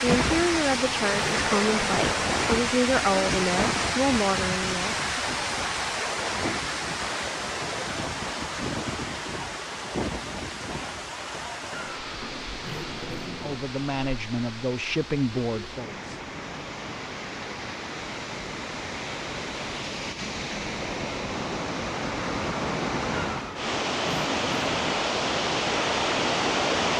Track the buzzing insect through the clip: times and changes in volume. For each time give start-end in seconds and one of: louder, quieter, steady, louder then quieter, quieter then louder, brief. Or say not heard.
not heard.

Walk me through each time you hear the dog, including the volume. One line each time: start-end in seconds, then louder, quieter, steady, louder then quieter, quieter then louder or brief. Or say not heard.
not heard.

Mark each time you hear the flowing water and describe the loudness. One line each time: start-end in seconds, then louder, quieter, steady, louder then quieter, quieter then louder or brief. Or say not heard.
0.0-26.9 quieter then louder.